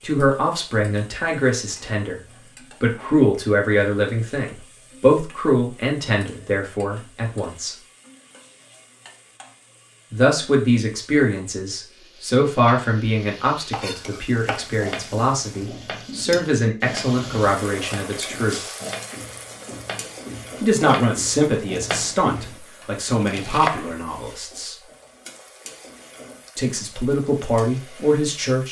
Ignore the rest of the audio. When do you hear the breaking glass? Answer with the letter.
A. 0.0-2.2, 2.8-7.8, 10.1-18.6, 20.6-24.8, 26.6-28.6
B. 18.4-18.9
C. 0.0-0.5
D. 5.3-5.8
B.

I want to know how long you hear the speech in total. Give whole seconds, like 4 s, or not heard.
22 s.